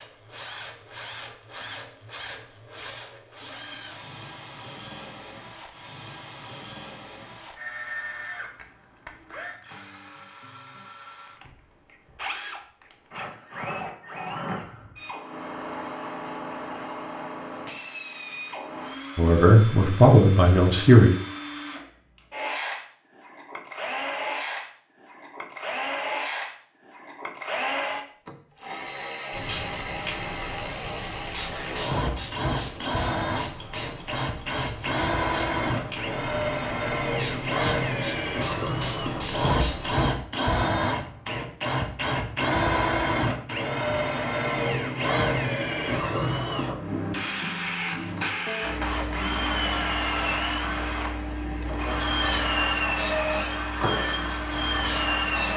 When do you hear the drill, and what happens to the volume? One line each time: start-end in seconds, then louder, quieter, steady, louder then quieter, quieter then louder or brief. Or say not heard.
0.0-55.5 louder.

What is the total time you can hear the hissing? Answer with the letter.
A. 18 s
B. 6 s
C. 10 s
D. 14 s
D.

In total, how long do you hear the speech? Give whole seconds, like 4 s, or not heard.
2 s.